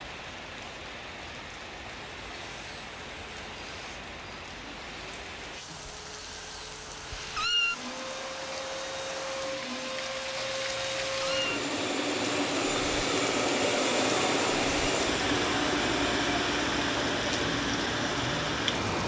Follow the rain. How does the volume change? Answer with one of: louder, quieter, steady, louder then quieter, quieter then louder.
louder.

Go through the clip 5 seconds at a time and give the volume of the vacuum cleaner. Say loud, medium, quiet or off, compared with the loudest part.
quiet, medium, loud, loud.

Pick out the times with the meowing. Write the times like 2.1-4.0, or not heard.
7.3-7.8, 11.2-11.6.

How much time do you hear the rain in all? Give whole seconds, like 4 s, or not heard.
19 s.